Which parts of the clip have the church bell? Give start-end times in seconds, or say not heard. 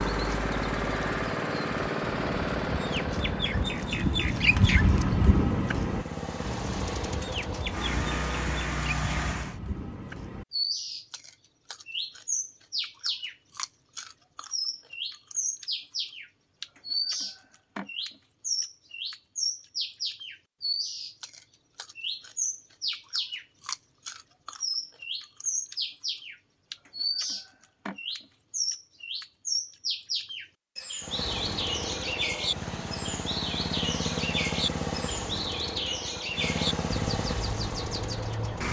not heard.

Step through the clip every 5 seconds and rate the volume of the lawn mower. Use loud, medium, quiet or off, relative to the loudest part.
loud, loud, off, off, off, off, loud, loud.